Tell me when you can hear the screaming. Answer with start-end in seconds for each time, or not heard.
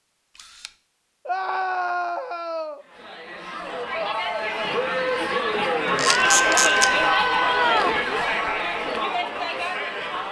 1.2-2.8, 6.0-8.0.